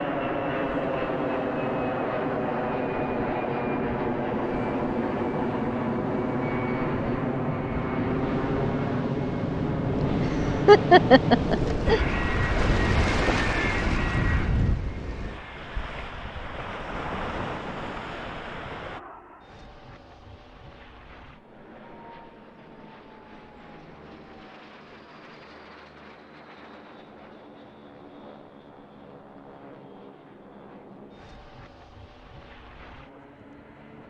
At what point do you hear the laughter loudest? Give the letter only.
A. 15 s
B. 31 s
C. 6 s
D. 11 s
D.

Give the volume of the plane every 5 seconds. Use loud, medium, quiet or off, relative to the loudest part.
loud, loud, loud, quiet, quiet, quiet, quiet.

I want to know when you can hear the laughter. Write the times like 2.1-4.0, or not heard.
10.0-12.1.